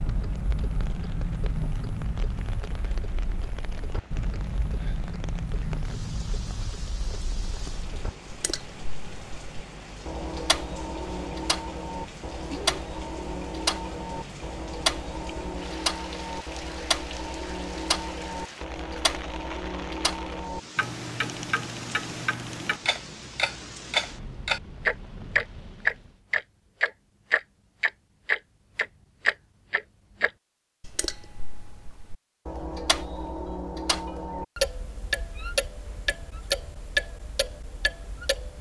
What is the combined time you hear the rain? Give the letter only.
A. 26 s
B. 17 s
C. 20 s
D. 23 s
A.